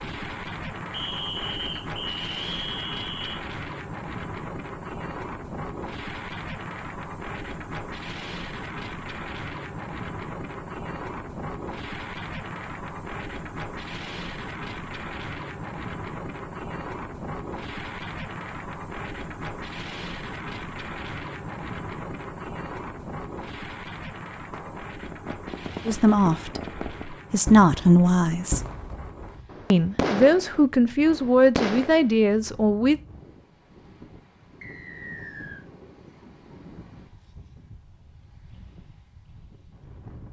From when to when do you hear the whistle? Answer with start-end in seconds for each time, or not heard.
0.9-3.4, 34.6-35.6.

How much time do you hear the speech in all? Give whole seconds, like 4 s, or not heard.
6 s.